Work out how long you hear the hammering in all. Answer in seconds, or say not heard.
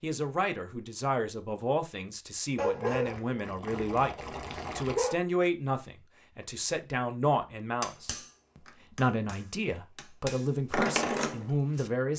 4 s.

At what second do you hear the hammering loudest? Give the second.
11 s.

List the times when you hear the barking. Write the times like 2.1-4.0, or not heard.
2.5-5.2.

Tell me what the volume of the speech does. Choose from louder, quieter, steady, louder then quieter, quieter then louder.
steady.